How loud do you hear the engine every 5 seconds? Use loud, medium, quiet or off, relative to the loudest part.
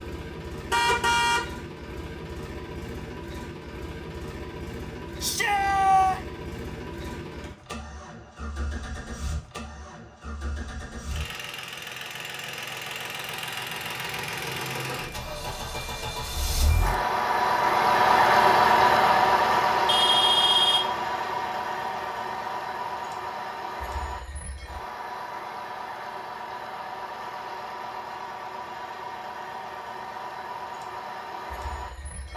quiet, quiet, quiet, loud, medium, quiet, quiet.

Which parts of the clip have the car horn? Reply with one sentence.
The car horn can be heard from 0.7 to 1.4 s and from 19.9 to 20.9 s.